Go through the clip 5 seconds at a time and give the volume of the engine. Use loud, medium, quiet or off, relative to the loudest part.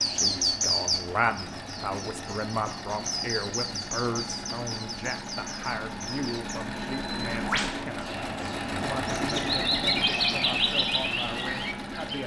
medium, loud, loud.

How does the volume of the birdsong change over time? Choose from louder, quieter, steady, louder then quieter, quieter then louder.
quieter then louder.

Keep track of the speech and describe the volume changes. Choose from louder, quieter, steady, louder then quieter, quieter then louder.
quieter.